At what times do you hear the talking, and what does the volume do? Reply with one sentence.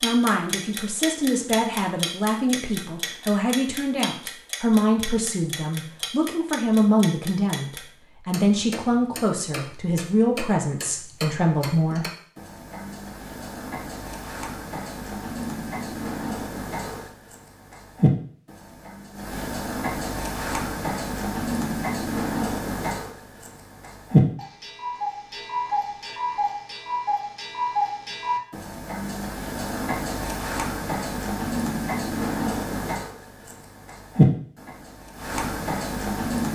You can hear the talking from 0.0 to 12.1 s, at a steady volume.